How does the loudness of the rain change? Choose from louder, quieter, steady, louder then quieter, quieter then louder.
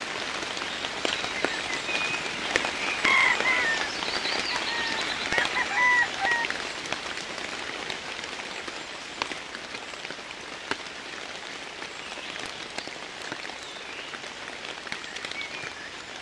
quieter.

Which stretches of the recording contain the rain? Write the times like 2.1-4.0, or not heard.
0.0-16.1.